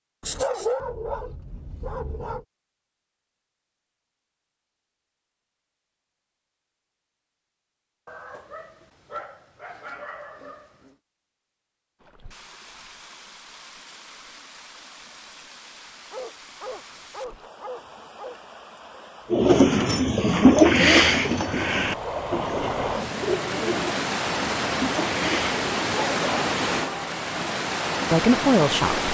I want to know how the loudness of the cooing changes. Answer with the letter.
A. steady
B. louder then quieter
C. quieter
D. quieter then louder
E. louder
C.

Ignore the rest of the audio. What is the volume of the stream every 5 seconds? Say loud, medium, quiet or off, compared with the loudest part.
off, off, quiet, quiet, loud, loud.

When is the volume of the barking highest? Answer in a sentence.
The volume of the barking peaks at 1 second.